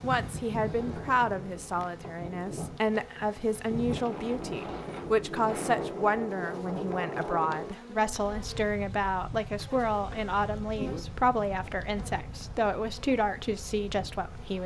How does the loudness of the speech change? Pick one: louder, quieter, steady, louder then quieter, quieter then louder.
steady.